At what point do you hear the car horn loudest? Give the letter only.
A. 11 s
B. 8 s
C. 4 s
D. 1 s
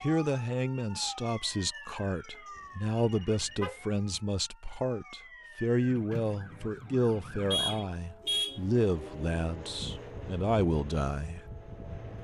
B.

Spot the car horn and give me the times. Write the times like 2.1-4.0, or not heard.
3.0-3.8, 7.5-8.6.